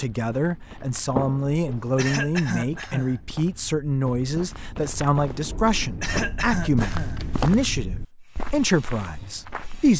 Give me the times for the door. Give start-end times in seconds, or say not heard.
1.1-2.0, 5.2-6.4.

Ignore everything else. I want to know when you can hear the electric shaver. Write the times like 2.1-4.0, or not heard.
not heard.